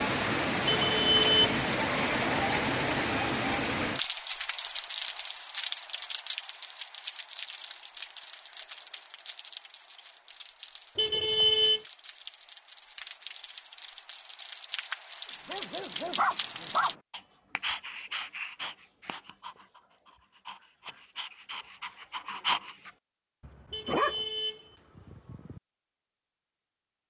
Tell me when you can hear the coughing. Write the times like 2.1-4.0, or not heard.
not heard.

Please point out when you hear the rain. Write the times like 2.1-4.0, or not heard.
0.0-16.9.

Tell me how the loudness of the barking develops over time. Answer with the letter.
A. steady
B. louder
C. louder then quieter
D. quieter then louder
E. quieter
D.